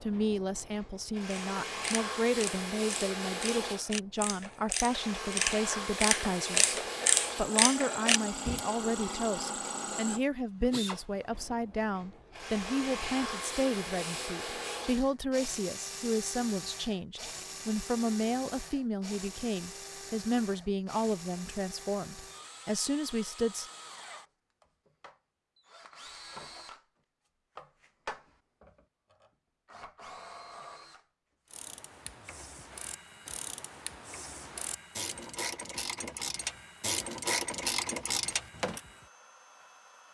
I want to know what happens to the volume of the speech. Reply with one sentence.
The loudness of the speech stays about the same.